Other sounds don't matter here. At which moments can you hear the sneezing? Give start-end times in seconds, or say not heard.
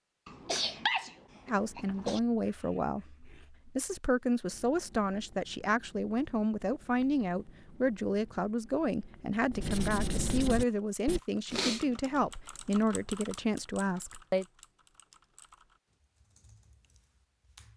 0.2-2.2, 11.4-12.3.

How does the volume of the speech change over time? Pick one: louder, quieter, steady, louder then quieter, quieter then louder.
steady.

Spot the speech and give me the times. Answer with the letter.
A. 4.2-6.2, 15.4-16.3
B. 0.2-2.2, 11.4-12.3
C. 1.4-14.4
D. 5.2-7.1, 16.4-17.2
C.